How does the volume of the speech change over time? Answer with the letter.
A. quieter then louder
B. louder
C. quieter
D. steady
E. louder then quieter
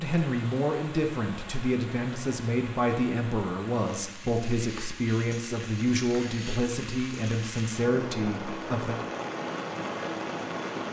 D.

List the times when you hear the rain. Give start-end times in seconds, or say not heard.
0.0-10.8.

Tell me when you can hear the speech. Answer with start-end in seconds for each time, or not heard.
0.0-8.9.